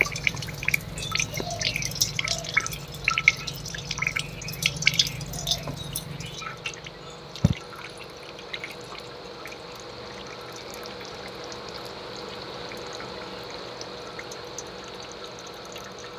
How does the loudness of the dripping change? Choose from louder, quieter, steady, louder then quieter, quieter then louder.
quieter.